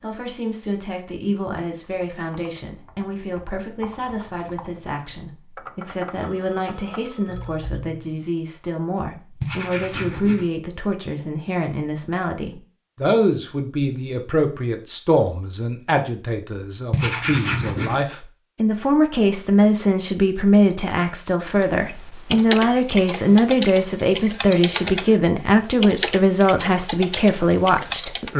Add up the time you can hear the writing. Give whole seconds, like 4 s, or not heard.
2 s.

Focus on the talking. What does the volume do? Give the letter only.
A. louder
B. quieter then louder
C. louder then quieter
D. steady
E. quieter
A.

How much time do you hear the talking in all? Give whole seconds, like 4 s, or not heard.
28 s.